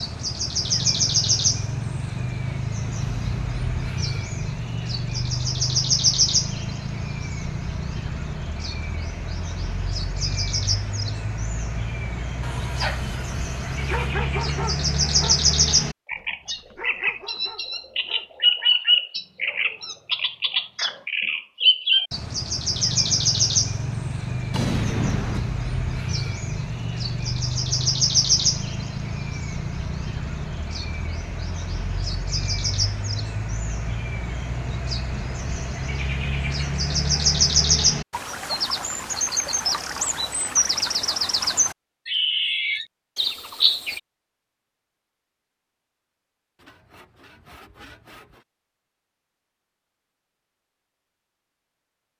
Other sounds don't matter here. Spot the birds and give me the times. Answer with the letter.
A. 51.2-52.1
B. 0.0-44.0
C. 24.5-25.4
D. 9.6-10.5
B.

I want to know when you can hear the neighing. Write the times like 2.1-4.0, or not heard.
24.5-25.4.